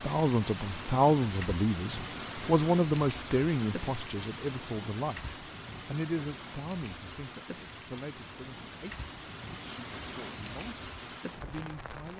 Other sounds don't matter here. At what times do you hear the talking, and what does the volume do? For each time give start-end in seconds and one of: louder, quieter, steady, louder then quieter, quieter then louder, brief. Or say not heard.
0.0-12.1 quieter.